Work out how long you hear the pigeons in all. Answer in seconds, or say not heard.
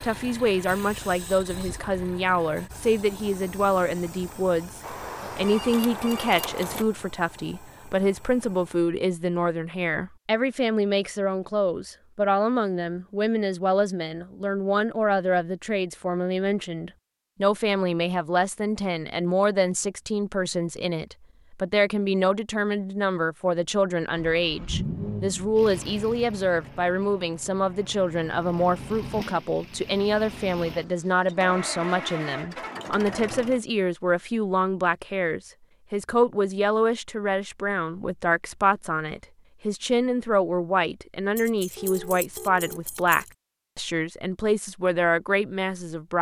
not heard.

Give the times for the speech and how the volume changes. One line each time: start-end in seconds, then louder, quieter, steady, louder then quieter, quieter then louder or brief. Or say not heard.
0.0-46.1 steady.